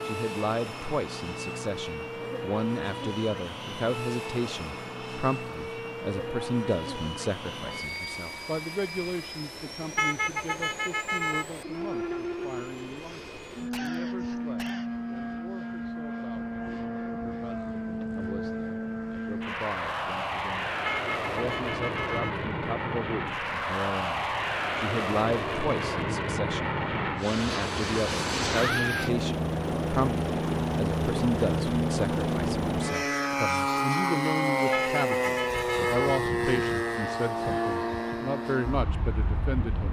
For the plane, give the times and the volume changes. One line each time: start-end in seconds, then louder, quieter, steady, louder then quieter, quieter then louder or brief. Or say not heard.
0.0-39.8 louder.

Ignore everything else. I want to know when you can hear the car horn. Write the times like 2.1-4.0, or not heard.
9.9-11.4, 20.9-22.4, 34.7-36.2.